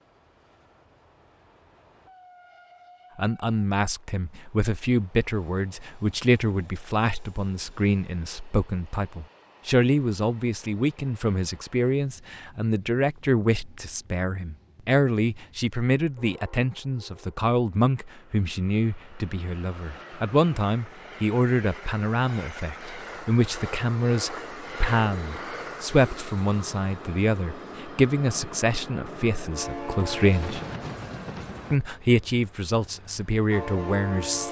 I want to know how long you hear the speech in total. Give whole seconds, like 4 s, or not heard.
30 s.